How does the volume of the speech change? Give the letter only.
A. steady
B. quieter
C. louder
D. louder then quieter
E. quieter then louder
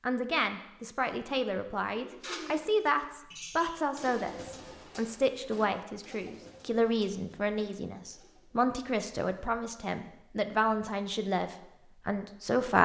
A.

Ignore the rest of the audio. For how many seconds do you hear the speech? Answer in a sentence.
The speech can be heard for 13 seconds in total.